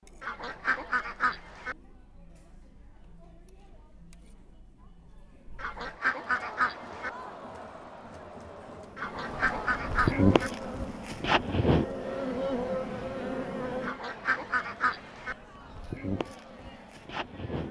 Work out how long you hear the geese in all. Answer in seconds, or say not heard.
6 s.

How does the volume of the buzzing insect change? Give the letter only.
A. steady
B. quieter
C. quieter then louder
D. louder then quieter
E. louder
C.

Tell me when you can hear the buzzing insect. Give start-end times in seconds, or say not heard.
8.9-17.6.